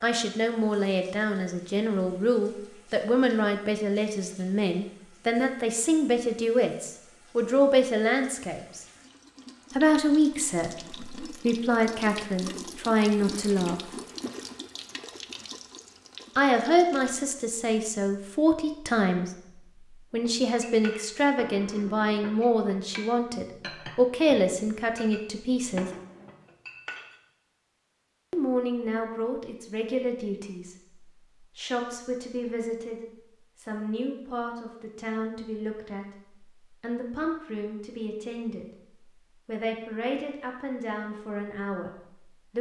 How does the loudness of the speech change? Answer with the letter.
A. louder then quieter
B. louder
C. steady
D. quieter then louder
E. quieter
E.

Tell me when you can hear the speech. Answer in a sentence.
The speech can be heard from 0.0 to 8.8 s, from 9.8 to 13.9 s, from 16.4 to 25.9 s and from 28.3 to 42.5 s.